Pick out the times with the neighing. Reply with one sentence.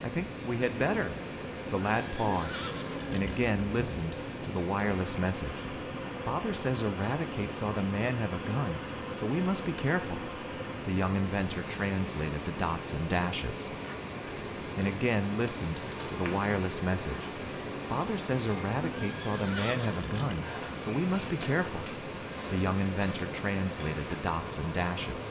You can hear the neighing from 2.0 to 3.4 s and from 18.9 to 20.4 s.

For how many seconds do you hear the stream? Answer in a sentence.
You can hear the stream for 25 seconds altogether.